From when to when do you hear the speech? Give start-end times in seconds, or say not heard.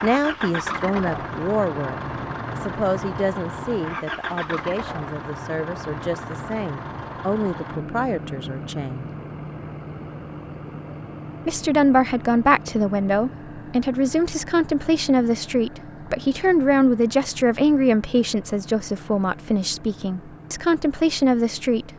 0.0-9.1, 11.4-21.9.